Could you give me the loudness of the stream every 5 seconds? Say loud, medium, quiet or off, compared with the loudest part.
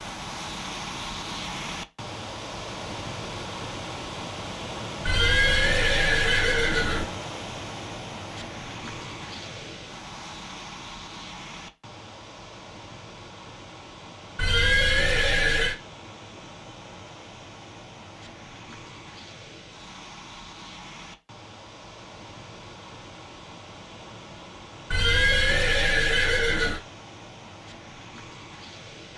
loud, loud, medium, medium, medium, medium.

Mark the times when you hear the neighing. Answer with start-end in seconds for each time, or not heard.
5.0-7.0, 14.3-15.8, 24.9-26.8.